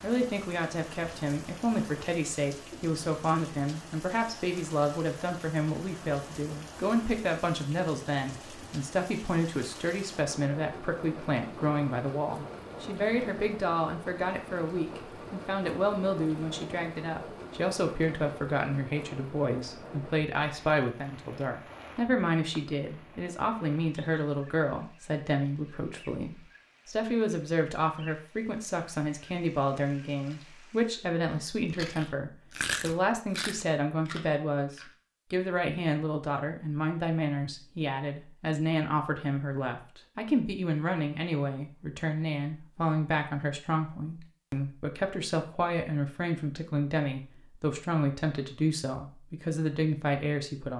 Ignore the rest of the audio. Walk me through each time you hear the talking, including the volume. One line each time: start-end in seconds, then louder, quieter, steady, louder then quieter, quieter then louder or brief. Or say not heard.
0.0-50.7 steady.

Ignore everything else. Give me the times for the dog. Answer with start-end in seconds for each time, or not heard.
not heard.